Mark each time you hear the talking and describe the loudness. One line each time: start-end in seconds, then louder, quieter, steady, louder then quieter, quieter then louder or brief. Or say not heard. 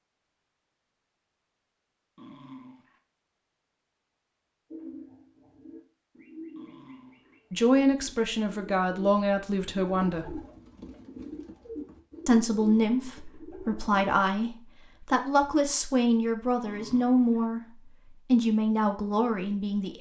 7.5-10.4 brief
12.2-19.9 steady.